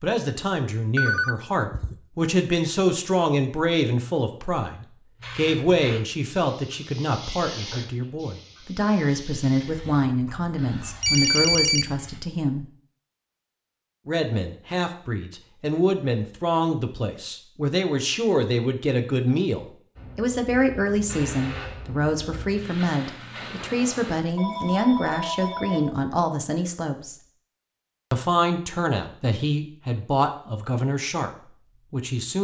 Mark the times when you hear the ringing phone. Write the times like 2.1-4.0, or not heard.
0.9-1.9, 10.8-11.8, 24.4-26.0.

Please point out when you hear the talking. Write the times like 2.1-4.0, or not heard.
0.0-12.7, 14.1-27.1, 28.1-32.3.